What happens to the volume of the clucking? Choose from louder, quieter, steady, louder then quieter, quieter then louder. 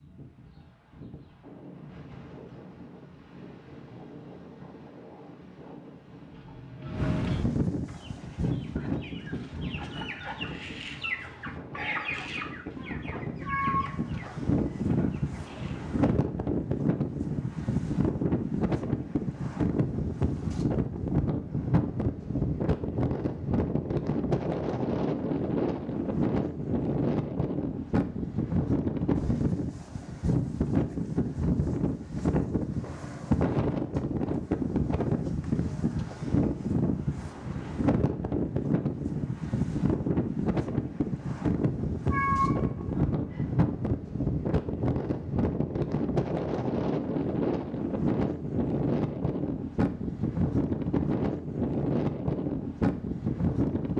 louder then quieter.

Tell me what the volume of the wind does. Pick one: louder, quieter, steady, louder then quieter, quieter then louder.
louder.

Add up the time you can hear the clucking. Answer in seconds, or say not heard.
8 s.